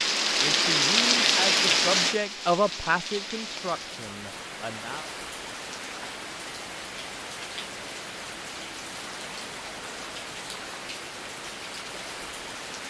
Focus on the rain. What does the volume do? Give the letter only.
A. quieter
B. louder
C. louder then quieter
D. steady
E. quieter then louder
A.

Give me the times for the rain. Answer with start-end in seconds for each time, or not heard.
0.0-12.8.